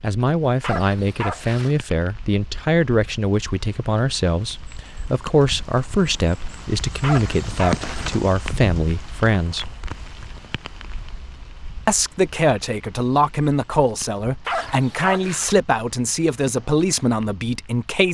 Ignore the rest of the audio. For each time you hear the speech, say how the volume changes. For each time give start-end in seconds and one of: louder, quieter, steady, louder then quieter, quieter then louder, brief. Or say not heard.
0.0-9.8 steady
11.8-18.0 steady.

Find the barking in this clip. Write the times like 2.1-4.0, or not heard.
0.6-1.8, 7.0-8.2, 14.4-15.6.